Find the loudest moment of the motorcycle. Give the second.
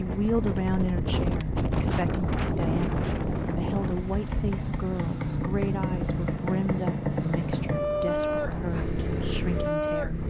8 s.